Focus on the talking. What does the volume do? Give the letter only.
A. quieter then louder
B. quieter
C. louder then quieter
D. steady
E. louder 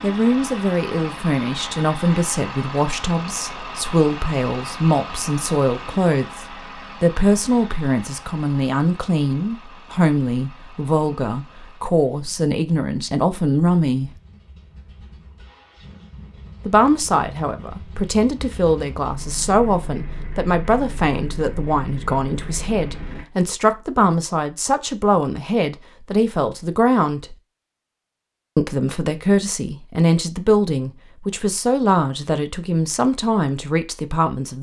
D.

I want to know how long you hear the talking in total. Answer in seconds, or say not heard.
31 s.